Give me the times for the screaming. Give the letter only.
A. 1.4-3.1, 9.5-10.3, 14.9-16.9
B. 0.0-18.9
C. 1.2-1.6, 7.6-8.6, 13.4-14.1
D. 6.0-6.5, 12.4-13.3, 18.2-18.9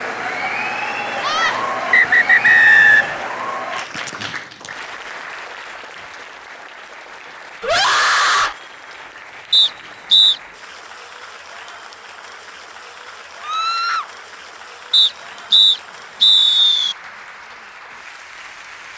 C.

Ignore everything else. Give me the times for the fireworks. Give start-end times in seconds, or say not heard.
not heard.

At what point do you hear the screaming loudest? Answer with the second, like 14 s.
8 s.